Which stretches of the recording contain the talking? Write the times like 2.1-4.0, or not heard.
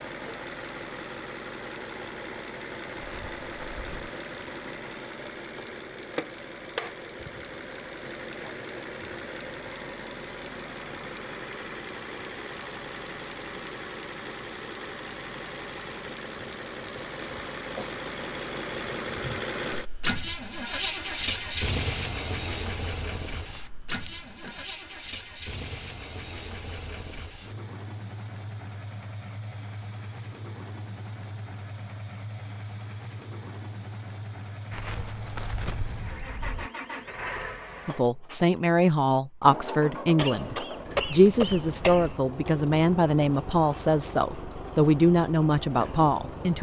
37.9-46.5.